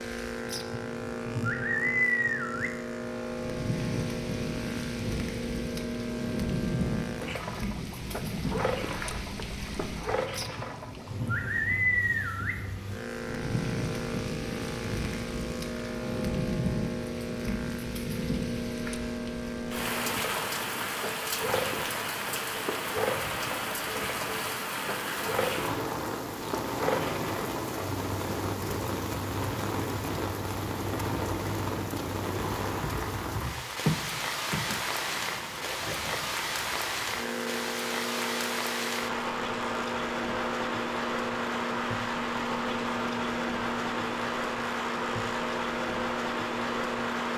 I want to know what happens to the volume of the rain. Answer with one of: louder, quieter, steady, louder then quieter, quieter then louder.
steady.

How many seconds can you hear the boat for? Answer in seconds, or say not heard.
47 s.